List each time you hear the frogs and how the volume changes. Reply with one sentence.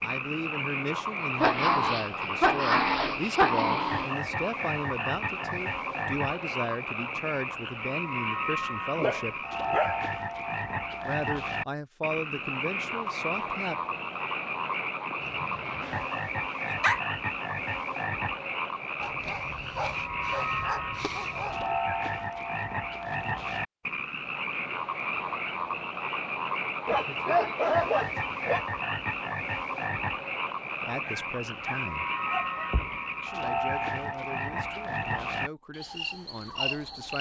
The frogs can be heard from 0.0 to 37.1 s, at a steady volume.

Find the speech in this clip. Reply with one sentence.
You can hear the speech from 0.0 to 9.4 s, from 11.1 to 13.8 s, from 30.8 to 32.0 s and from 33.2 to 37.1 s.